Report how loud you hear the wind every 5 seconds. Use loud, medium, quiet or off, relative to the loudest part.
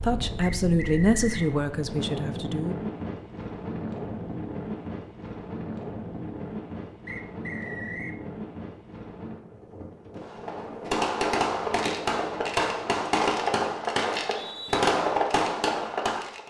loud, loud, medium, off.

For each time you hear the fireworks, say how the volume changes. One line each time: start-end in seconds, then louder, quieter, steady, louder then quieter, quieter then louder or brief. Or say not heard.
10.2-16.4 steady.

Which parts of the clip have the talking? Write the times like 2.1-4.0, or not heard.
0.0-2.8.